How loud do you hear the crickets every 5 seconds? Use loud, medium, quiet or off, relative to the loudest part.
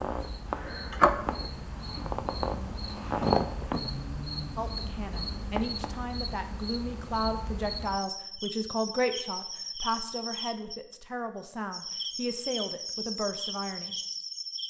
loud, medium, medium.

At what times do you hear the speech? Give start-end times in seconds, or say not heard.
4.5-13.9.